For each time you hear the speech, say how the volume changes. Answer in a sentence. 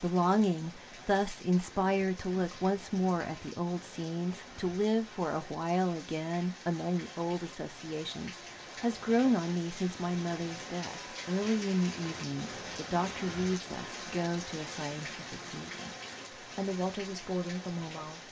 You can hear the speech from 0.0 to 18.2 s, getting quieter.